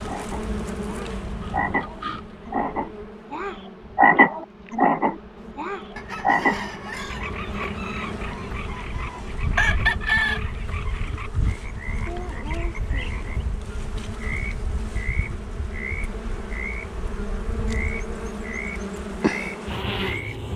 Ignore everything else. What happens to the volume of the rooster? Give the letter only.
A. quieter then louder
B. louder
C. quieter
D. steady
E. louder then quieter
A.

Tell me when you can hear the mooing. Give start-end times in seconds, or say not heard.
not heard.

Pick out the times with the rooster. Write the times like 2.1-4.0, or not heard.
6.0-10.4.